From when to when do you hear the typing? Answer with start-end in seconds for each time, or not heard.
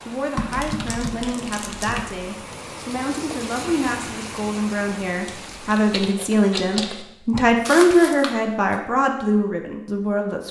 0.3-2.1, 5.2-7.0.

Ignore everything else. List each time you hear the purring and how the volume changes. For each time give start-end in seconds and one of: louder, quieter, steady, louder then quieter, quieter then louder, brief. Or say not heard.
not heard.